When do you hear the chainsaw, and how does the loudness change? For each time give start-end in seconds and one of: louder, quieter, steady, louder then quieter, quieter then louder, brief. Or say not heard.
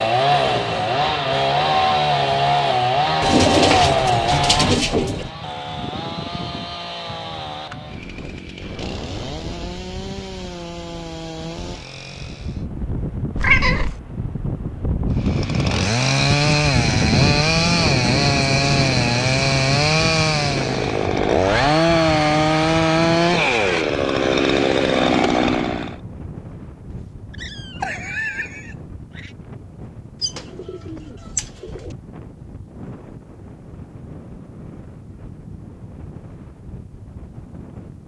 0.0-12.7 quieter
15.2-26.0 steady.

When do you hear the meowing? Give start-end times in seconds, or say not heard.
13.3-14.0, 26.9-29.3.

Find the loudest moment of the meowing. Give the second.
14 s.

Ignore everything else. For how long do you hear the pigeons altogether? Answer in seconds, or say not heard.
4 s.